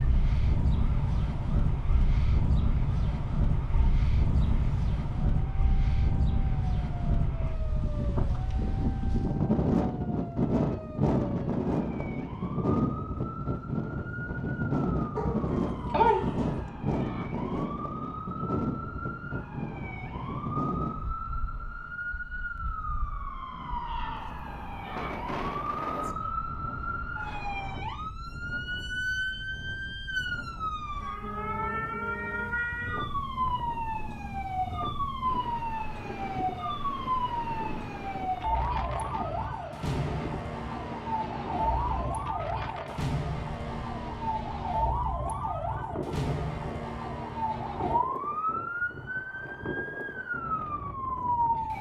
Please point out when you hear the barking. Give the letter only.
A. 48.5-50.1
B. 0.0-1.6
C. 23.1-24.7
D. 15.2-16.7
D.